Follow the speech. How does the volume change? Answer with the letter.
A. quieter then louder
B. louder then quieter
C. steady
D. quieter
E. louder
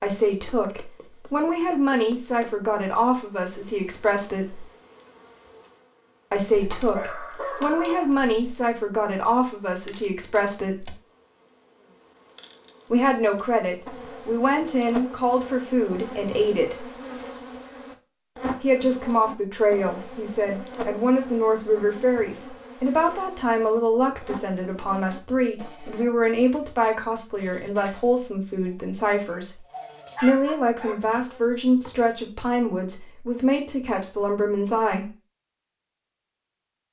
C.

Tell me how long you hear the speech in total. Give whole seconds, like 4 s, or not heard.
29 s.